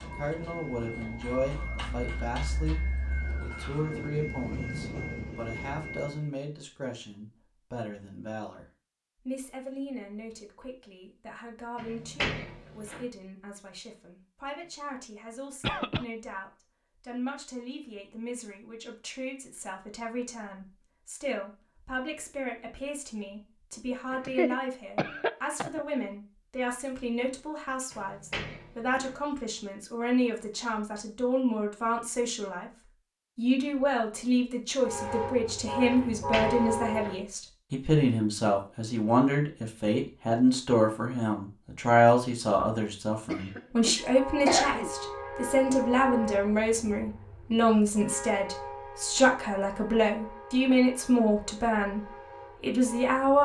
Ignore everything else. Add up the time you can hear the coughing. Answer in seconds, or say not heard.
4 s.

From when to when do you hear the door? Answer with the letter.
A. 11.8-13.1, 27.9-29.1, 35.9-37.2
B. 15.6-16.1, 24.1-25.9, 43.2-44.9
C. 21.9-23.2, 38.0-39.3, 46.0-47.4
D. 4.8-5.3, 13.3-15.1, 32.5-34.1
A.